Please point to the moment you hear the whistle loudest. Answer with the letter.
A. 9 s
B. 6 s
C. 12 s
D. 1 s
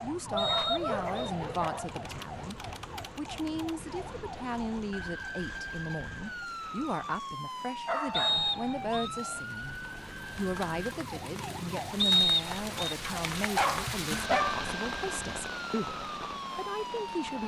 C.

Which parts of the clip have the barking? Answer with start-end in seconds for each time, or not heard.
0.3-1.9, 7.8-9.4, 13.1-14.7.